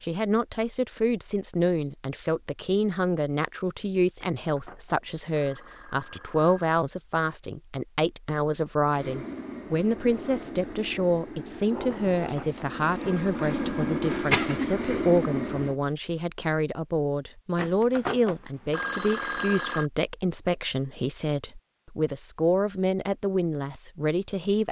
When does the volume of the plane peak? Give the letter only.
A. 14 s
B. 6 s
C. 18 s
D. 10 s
A.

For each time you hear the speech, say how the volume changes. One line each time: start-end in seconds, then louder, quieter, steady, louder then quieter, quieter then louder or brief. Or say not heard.
0.0-24.6 steady.